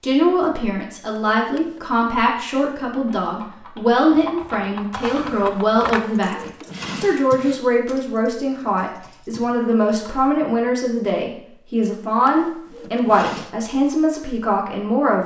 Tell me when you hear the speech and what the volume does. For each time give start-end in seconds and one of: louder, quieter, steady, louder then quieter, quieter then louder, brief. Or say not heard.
0.0-15.2 steady.